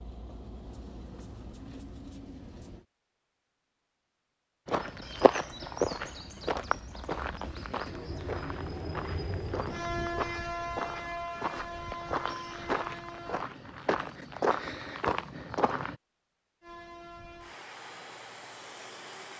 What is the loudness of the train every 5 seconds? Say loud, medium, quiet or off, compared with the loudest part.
medium, loud, loud, medium.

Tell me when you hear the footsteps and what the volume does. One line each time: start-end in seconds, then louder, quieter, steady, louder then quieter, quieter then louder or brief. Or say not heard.
4.7-15.9 quieter then louder.